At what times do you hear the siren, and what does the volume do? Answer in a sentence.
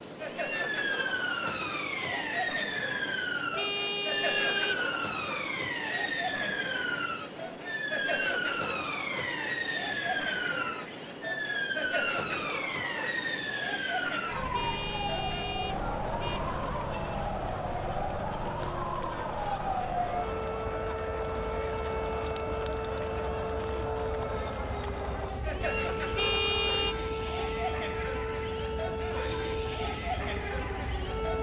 The siren can be heard from 0.0 to 31.3 s, at a steady volume.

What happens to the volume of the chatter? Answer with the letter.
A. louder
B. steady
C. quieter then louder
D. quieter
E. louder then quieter
B.